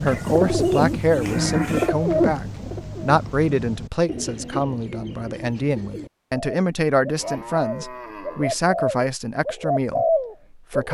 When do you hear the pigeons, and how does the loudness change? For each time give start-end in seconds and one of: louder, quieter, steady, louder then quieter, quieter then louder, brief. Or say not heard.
0.0-10.8 quieter then louder.